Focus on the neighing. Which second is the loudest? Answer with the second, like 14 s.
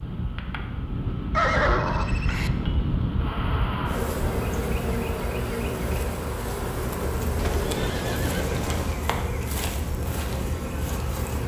2 s.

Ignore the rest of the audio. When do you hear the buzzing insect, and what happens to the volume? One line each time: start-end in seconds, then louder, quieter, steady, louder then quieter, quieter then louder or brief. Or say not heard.
0.0-11.4 louder.